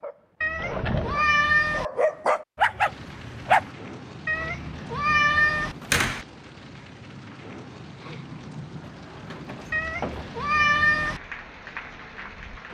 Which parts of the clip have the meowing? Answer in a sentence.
You can hear the meowing from 0.4 to 1.9 s, from 4.2 to 5.8 s and from 9.7 to 11.2 s.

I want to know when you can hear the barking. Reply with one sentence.
The barking can be heard from 0.0 to 3.7 s.